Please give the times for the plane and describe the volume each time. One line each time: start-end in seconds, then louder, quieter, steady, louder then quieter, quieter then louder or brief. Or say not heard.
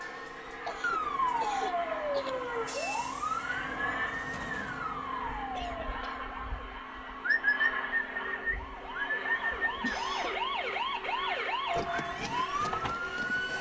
0.0-13.5 steady.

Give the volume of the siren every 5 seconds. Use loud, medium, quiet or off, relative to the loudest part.
loud, medium, loud.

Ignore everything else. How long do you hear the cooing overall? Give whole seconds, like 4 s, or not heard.
3 s.